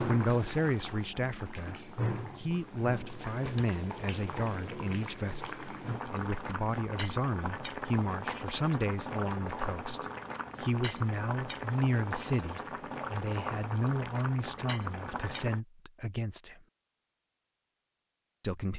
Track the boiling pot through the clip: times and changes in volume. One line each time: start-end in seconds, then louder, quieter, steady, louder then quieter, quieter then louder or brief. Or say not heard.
0.0-15.6 steady.